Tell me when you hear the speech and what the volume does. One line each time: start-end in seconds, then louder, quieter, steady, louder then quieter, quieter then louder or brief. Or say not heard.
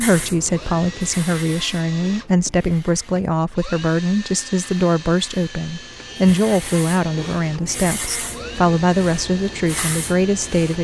0.0-10.7 steady.